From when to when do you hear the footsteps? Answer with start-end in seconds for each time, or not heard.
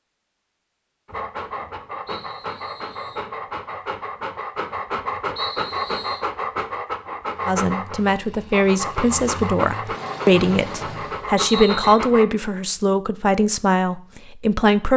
not heard.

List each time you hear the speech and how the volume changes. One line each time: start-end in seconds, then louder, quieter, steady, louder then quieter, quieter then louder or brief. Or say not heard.
7.5-14.9 steady.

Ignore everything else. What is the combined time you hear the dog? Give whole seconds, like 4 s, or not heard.
11 s.